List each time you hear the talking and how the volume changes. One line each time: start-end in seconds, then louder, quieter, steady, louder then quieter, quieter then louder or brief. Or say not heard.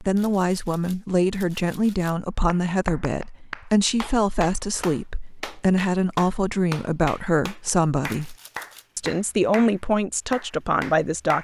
0.0-8.3 steady
8.9-11.4 brief.